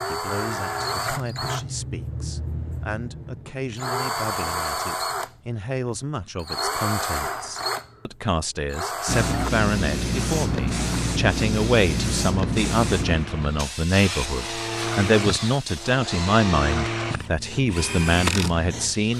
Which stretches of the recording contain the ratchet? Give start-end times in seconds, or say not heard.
not heard.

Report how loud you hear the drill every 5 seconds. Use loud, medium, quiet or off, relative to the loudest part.
loud, loud, medium, loud.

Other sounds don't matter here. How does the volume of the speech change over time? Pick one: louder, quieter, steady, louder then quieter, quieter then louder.
louder.